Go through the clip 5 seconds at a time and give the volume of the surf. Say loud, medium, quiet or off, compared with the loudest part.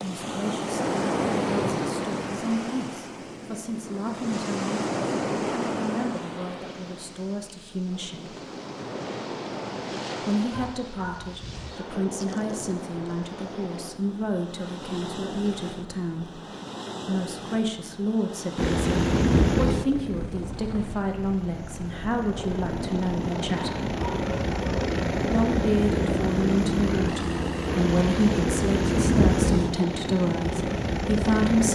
loud, loud, medium, medium, quiet, off, off.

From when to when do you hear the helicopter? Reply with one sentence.
The helicopter can be heard from 18.6 to 31.7 s.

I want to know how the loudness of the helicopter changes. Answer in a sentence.
The loudness of the helicopter goes down, then up.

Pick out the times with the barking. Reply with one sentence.
The barking can be heard from 10.5 to 11.9 s and from 23.5 to 24.9 s.